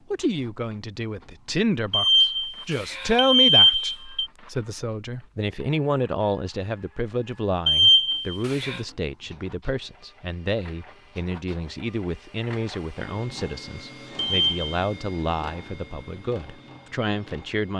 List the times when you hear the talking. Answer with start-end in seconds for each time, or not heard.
0.1-17.7.